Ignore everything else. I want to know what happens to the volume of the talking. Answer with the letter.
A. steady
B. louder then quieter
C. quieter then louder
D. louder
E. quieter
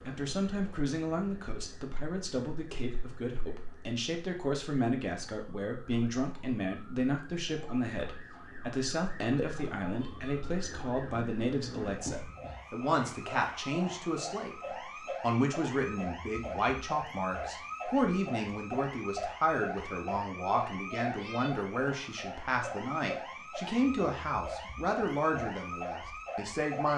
A.